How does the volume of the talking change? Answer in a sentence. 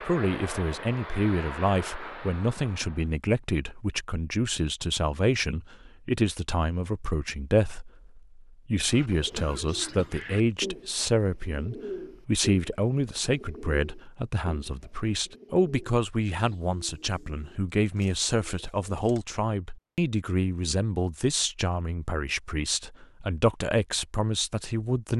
The loudness of the talking stays about the same.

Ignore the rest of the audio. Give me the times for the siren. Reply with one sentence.
The siren can't be heard in this clip.